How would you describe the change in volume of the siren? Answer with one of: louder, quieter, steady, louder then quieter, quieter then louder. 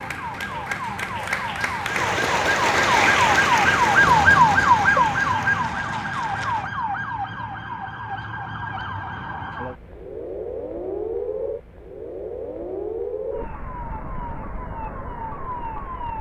louder then quieter.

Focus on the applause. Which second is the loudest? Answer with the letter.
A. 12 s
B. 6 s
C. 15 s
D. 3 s
D.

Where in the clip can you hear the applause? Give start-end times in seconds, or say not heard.
0.0-6.7.